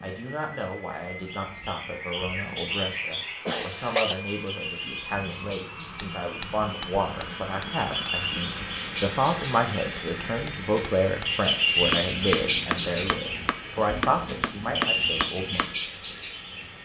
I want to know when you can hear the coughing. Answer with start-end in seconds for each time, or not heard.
3.5-4.2.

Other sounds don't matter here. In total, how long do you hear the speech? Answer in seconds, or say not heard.
16 s.